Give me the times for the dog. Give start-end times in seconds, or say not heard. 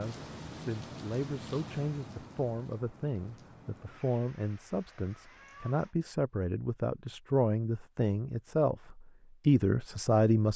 not heard.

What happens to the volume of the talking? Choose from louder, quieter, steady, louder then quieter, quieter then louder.
louder.